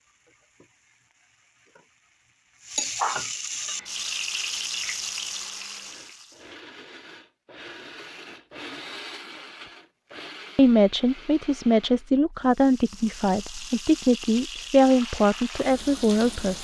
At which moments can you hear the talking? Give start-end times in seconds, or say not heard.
10.6-16.5.